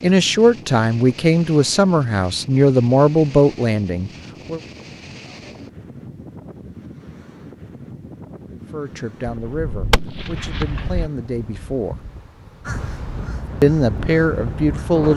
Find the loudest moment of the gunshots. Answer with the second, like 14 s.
10 s.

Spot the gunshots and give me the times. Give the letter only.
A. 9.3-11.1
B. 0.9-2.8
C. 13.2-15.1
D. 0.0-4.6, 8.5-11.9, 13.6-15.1
A.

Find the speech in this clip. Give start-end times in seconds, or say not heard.
0.0-4.6, 8.5-11.9, 13.6-15.1.